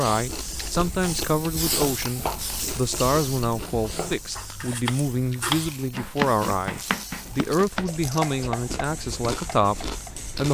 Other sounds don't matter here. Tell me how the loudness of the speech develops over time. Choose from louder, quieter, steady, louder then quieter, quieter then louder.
steady.